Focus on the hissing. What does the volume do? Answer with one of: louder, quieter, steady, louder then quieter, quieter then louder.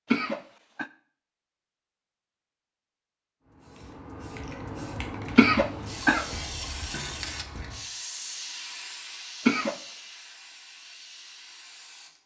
quieter.